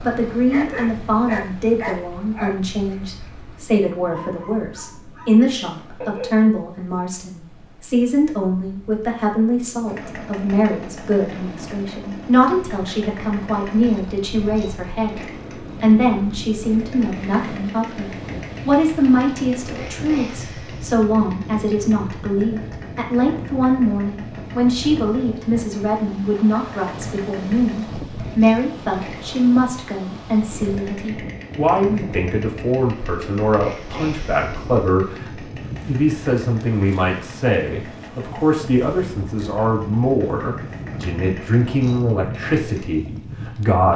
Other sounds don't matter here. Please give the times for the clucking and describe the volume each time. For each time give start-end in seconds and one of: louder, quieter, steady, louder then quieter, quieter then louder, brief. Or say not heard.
not heard.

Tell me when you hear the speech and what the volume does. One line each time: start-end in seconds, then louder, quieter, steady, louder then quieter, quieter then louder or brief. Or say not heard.
0.0-43.9 steady.